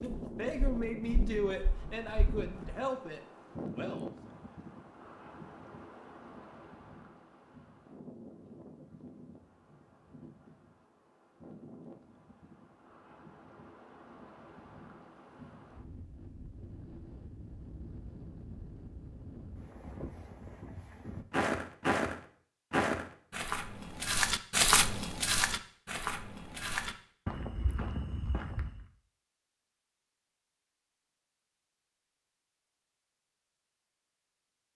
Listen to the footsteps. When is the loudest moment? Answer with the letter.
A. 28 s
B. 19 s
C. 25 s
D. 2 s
C.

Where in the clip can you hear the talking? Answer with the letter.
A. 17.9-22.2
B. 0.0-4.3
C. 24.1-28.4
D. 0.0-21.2
B.